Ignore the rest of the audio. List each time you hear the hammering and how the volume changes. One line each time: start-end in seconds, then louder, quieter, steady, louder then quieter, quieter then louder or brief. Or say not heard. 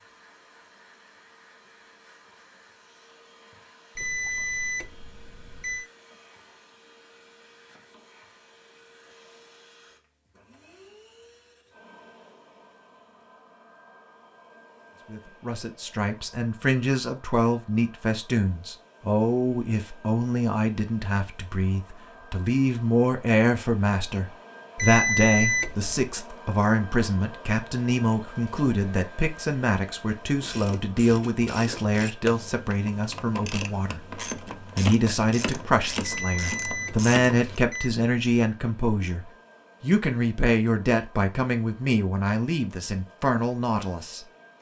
not heard.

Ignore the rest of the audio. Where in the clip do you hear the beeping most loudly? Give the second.
25 s.